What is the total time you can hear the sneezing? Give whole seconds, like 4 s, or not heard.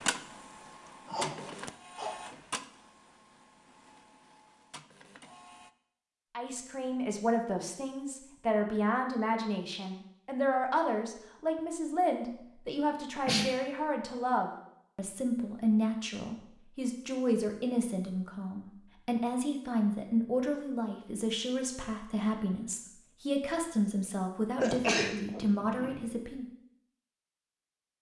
3 s.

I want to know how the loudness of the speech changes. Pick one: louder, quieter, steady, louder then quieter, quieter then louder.
steady.